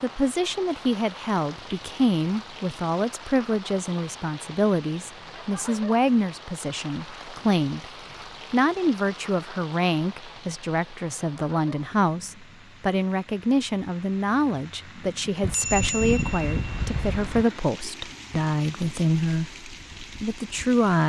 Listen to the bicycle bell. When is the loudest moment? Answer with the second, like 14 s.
16 s.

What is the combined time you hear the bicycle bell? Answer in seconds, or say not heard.
2 s.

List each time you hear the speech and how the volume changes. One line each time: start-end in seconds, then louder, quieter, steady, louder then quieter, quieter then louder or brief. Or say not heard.
0.0-7.8 steady
8.5-21.0 steady.